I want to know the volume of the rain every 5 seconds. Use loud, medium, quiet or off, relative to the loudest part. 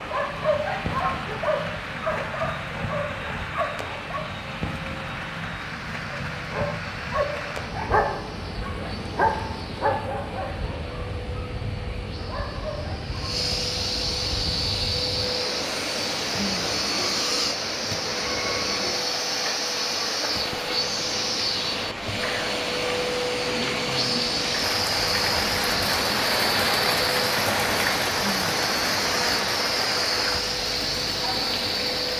medium, medium, medium, medium, medium, loud, medium.